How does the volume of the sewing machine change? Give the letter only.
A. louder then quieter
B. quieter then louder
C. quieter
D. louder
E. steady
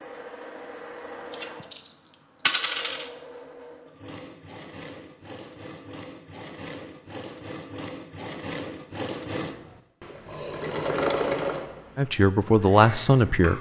D.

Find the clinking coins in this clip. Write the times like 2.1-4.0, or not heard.
1.3-3.1.